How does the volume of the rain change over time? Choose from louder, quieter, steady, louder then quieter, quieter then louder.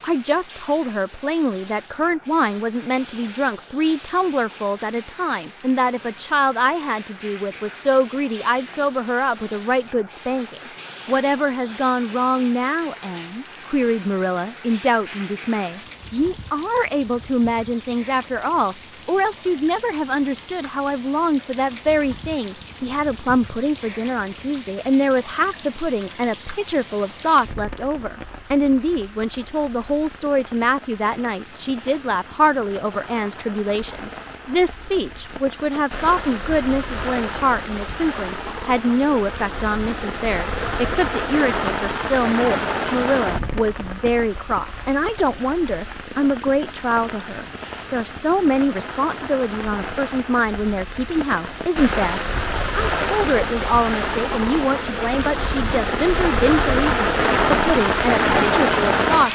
louder.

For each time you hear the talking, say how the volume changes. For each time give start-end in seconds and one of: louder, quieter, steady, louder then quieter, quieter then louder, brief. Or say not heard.
0.0-59.3 steady.